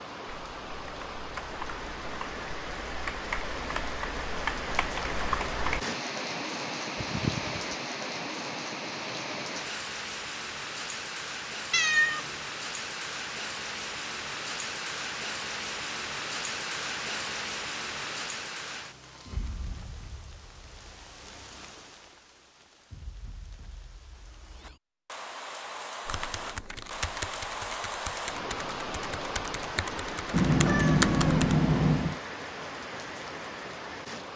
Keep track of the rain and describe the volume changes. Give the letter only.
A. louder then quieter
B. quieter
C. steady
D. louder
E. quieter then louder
E.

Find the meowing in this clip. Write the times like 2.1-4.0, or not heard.
7.0-7.8, 11.7-12.4, 30.3-32.2.